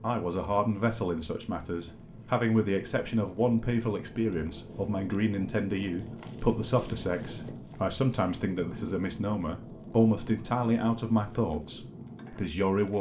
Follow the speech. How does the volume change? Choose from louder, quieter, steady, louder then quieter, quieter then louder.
steady.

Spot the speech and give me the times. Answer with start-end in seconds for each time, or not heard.
0.0-12.9.